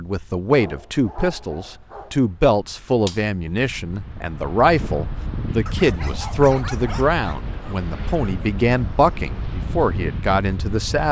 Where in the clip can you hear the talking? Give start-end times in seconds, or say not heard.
0.0-11.0.